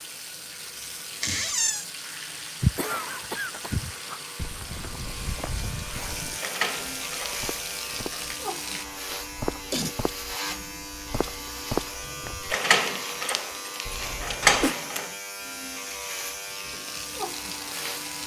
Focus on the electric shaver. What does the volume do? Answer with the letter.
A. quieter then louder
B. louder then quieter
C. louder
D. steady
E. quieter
C.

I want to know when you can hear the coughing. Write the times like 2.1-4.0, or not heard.
2.8-4.2, 9.1-9.9, 13.8-14.8.